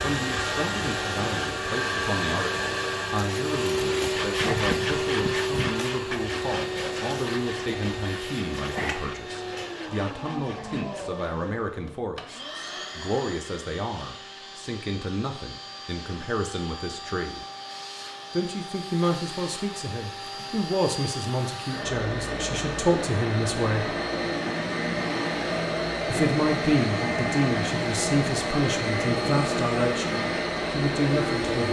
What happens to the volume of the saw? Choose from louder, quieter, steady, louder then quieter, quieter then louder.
quieter.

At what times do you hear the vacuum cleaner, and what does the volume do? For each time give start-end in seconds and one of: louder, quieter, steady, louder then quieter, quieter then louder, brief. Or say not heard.
0.0-31.6 quieter then louder.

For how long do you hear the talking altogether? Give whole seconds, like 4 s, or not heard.
29 s.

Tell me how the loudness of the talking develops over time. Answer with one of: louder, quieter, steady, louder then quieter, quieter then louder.
louder.